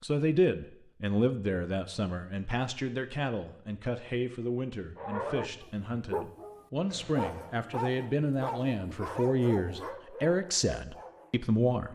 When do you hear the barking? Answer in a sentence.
You can hear the barking from 5.0 to 11.5 s.